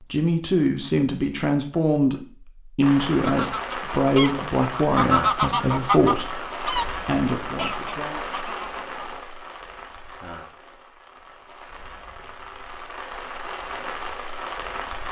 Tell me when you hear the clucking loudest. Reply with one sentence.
The loudest moment of the clucking is at 5 seconds.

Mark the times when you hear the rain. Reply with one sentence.
You can hear the rain from 2.8 to 15.0 s.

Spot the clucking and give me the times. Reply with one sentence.
The clucking can be heard from 3.1 to 9.2 s.